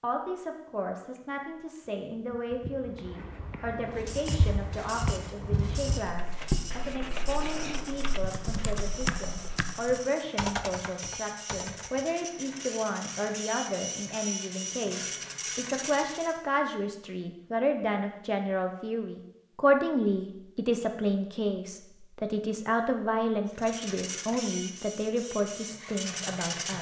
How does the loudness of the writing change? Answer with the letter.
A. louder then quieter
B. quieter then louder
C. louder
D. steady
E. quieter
A.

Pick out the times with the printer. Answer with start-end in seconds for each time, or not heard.
3.8-16.4, 23.6-26.7.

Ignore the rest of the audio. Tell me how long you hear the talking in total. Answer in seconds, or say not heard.
27 s.